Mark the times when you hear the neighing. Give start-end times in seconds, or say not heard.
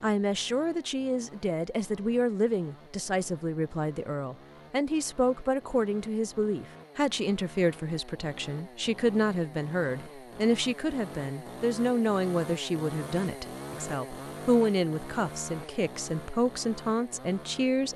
not heard.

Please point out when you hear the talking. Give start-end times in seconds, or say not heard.
0.0-17.9.